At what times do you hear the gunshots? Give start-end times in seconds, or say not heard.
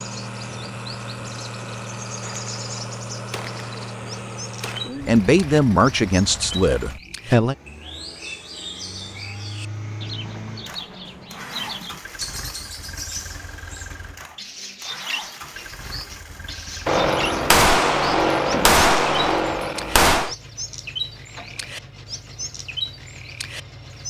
2.2-4.8, 16.9-20.4.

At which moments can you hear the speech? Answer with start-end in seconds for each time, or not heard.
5.0-7.5.